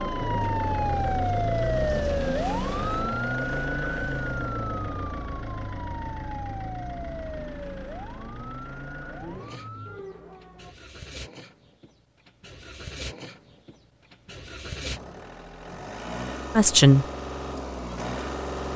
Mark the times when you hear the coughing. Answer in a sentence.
The coughing can't be heard in this clip.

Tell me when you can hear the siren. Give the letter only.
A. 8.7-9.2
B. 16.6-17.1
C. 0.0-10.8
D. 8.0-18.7
C.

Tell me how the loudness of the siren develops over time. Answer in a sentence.
The volume of the siren goes down.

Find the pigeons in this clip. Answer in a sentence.
You can't hear the pigeons here.